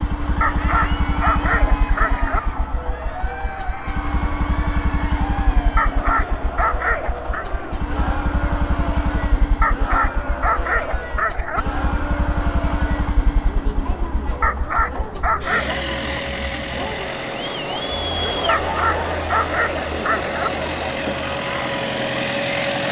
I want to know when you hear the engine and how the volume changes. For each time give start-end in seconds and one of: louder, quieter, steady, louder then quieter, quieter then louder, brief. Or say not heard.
0.0-22.8 steady.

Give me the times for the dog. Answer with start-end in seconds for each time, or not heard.
0.4-2.4, 5.8-7.5, 9.6-11.7, 14.4-15.8, 18.4-20.5.